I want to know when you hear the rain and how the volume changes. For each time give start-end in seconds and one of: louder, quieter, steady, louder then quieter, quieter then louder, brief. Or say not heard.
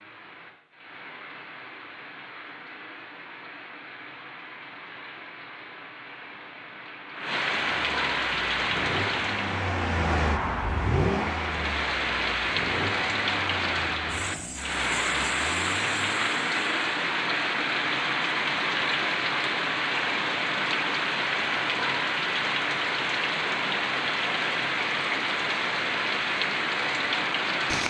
0.0-27.8 louder.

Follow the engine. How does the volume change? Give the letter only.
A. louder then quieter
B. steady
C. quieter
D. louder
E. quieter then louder
C.